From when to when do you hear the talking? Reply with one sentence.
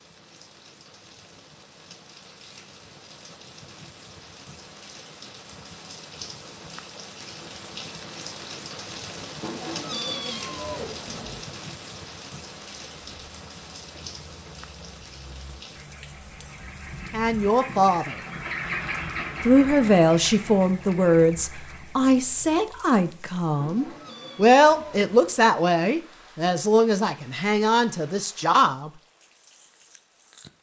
You can hear the talking from 17.1 to 18.1 s and from 19.4 to 28.9 s.